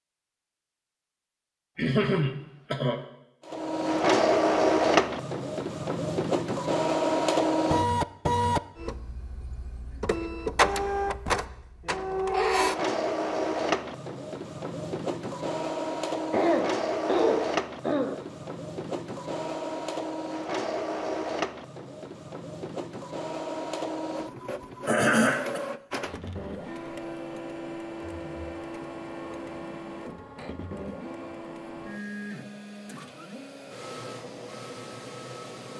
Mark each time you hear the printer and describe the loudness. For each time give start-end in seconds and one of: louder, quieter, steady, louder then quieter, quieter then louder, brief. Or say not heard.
3.5-35.7 quieter.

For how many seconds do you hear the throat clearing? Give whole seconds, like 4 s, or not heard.
4 s.